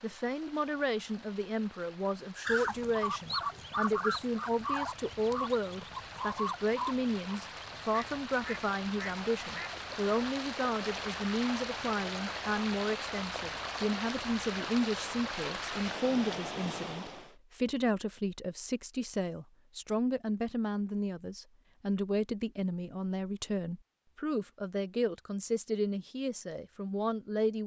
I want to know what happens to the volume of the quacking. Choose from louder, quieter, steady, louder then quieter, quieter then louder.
quieter.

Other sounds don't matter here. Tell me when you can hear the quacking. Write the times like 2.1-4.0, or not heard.
2.5-9.8.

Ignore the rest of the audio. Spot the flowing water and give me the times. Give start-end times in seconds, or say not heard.
0.0-17.4.